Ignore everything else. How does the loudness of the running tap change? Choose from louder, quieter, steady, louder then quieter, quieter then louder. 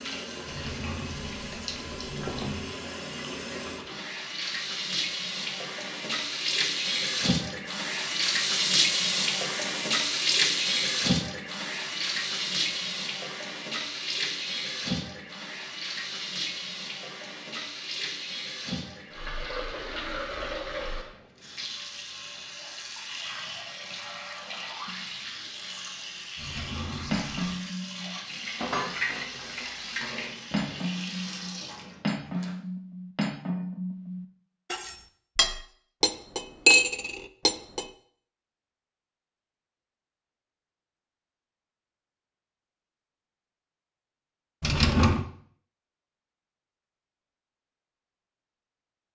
louder then quieter.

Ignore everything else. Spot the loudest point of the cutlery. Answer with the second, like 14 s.
37 s.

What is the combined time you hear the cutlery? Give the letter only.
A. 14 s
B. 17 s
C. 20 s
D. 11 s
D.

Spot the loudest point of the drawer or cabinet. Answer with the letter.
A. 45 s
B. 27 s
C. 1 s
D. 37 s
A.